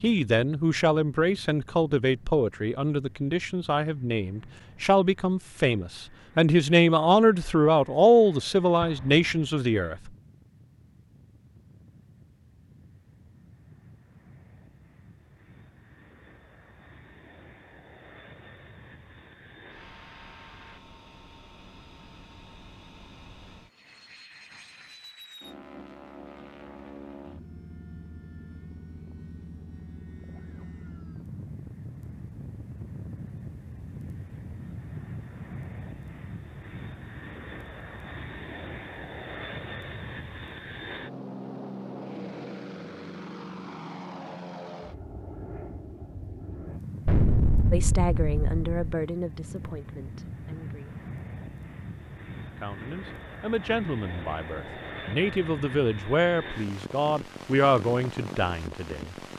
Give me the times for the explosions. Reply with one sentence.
The explosions can be heard from 8.8 to 9.6 s and from 47.0 to 48.8 s.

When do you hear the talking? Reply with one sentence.
The talking can be heard from 0.0 to 10.1 s, from 47.7 to 51.0 s and from 52.5 to 59.1 s.